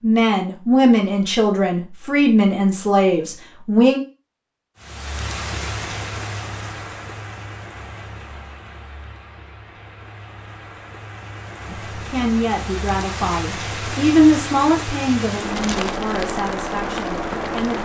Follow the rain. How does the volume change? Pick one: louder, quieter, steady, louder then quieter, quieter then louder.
quieter then louder.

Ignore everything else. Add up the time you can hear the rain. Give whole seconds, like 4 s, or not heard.
13 s.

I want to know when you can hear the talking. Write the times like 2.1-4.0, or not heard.
0.0-4.0, 11.7-17.8.